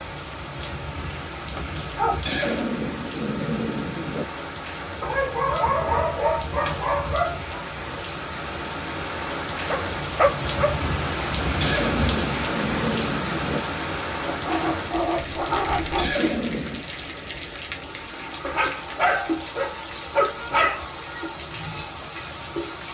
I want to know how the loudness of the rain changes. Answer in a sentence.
The loudness of the rain goes up, then down.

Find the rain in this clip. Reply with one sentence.
You can hear the rain from 0.0 to 22.9 s.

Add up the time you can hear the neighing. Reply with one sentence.
You can hear the neighing for 5 seconds altogether.